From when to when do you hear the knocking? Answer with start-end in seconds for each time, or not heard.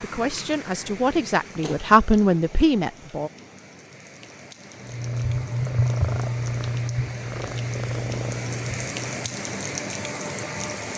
not heard.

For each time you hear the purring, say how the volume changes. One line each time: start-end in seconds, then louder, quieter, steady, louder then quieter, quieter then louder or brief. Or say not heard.
4.8-9.3 quieter.